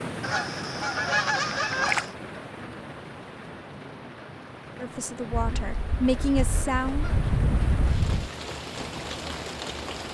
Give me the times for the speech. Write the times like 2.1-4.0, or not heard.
4.8-7.0.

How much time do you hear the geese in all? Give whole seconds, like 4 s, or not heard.
5 s.